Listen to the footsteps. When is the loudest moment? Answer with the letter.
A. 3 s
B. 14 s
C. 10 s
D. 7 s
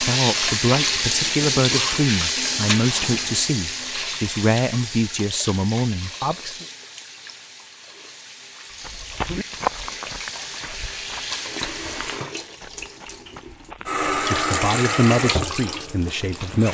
C.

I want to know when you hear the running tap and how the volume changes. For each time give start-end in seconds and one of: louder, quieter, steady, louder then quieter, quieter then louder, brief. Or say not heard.
0.0-16.6 quieter then louder.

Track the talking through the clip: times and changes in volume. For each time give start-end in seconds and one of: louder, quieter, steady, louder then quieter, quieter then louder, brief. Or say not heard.
0.0-6.7 steady
14.2-16.6 brief.